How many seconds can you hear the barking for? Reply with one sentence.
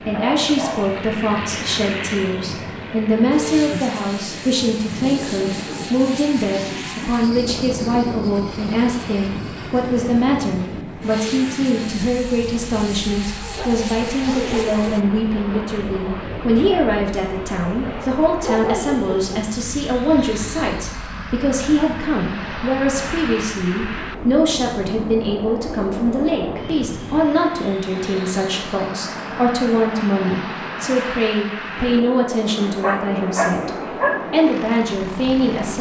The barking can be heard for 5 seconds in total.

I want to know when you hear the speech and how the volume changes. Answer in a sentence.
The speech can be heard from 0.1 to 33.7 s, at a steady volume; and briefly from 34.3 to 35.7 s.